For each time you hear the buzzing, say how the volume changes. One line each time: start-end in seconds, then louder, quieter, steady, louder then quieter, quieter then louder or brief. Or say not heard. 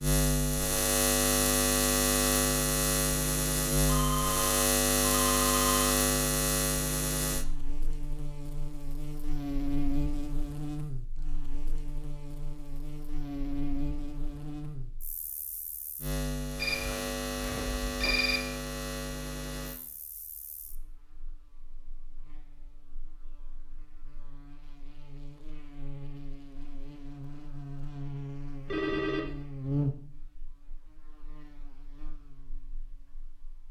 0.0-33.6 quieter then louder.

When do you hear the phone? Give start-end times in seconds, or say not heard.
3.9-5.8, 16.6-18.4, 28.6-29.3.